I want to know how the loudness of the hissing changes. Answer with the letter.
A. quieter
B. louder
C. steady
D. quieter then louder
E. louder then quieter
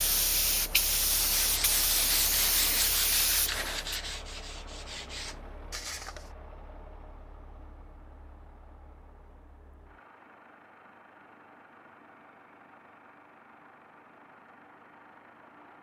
C.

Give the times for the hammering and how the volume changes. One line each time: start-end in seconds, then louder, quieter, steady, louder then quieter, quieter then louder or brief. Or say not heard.
not heard.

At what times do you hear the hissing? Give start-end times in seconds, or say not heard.
0.0-4.0.